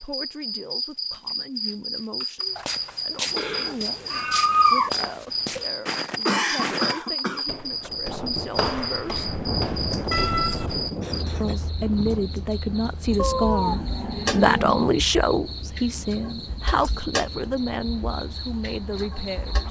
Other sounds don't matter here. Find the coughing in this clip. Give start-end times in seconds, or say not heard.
6.2-7.5, 11.0-11.6.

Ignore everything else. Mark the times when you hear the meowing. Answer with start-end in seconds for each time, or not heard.
3.4-4.9, 10.1-10.9, 13.2-15.0.